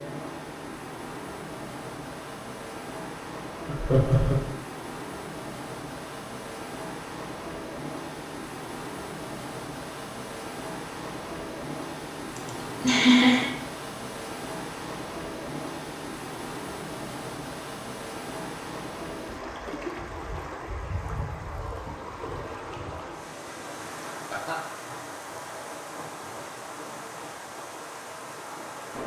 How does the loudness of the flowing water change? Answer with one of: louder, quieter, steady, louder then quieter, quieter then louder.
steady.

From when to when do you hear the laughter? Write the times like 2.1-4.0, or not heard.
3.6-4.4, 12.3-13.5, 24.1-24.6.